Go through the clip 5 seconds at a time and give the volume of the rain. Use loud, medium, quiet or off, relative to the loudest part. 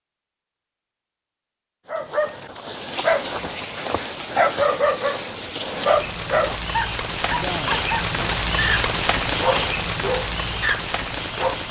medium, loud, loud.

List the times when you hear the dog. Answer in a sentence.
You can hear the dog from 1.9 to 11.6 s.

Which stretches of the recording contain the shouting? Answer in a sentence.
The shouting can't be heard in this clip.